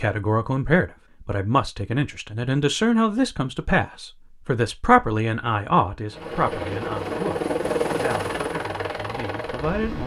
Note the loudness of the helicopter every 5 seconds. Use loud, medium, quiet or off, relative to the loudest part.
off, loud.